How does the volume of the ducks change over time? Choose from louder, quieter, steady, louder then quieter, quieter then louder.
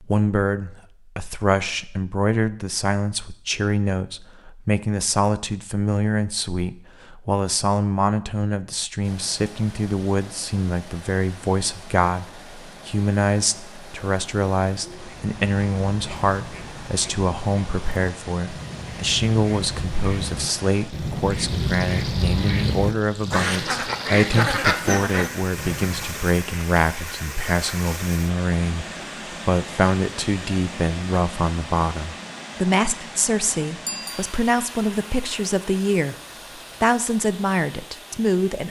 louder.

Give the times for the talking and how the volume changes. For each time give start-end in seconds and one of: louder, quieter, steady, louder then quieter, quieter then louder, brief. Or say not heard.
0.0-36.1 steady
36.8-38.6 brief.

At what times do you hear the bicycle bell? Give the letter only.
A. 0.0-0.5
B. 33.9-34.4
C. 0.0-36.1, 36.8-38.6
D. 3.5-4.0
B.